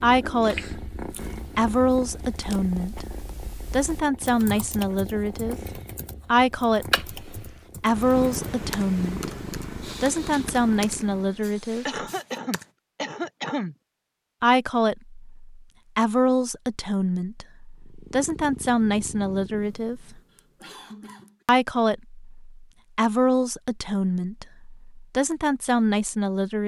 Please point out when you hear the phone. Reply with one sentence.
The phone can't be heard in this clip.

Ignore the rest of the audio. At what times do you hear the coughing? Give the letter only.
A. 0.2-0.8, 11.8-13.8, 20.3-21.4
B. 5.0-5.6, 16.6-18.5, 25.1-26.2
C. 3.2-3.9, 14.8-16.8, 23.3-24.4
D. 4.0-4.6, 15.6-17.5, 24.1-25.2
A.